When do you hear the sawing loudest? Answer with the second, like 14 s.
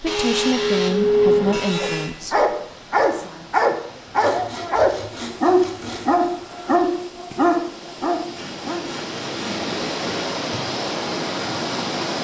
1 s.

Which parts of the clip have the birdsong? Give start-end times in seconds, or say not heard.
not heard.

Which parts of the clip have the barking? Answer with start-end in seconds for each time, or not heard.
1.8-8.9.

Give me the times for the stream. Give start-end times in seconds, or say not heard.
0.0-12.1.